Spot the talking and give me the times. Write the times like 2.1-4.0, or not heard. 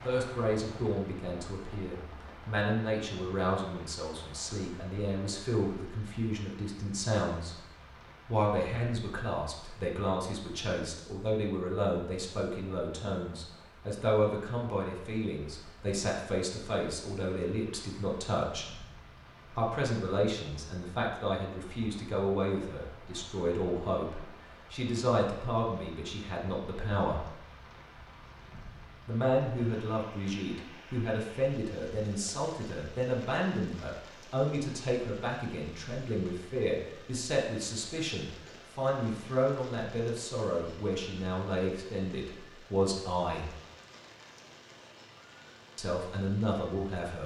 0.0-7.6, 8.2-18.6, 19.5-27.3, 29.1-43.5, 45.8-47.2.